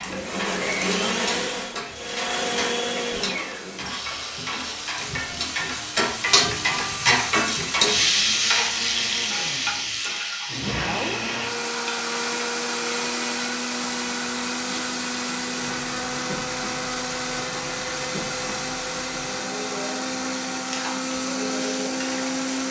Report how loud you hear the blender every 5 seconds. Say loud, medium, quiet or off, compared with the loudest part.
loud, medium, loud, loud, loud.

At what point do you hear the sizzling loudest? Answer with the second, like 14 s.
8 s.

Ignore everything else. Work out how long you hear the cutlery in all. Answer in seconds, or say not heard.
not heard.